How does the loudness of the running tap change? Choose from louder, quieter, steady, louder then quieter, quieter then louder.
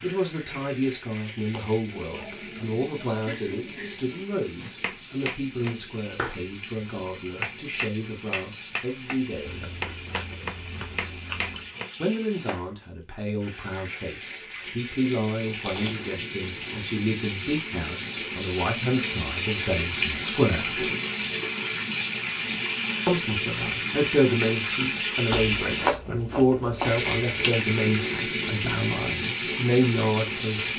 louder.